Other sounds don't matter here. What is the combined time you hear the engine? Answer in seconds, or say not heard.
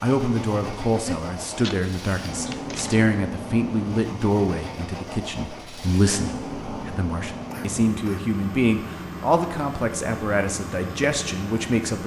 12 s.